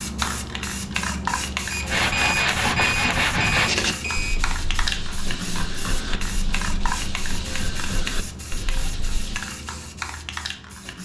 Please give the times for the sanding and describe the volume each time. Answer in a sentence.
You can hear the sanding from 1.8 to 9.4 s, getting quieter.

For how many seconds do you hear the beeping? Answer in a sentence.
The beeping can be heard for 3 seconds in total.